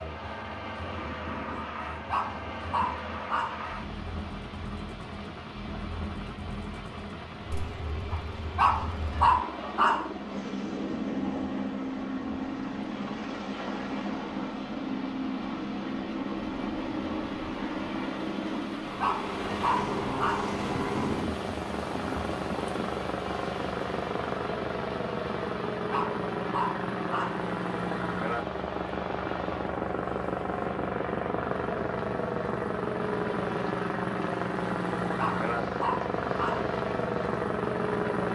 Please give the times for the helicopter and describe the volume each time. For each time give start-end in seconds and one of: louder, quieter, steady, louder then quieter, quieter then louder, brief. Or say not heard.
0.0-38.2 louder.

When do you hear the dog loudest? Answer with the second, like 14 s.
9 s.